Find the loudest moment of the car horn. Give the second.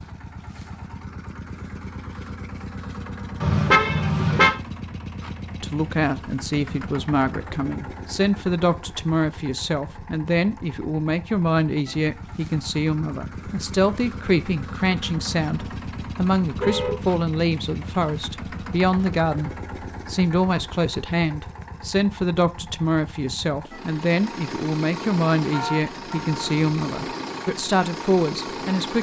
4 s.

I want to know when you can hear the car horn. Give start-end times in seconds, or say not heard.
3.4-4.5, 16.6-17.0, 25.5-26.6.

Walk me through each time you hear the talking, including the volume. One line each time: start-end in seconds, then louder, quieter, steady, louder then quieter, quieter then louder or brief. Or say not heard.
5.6-28.9 steady.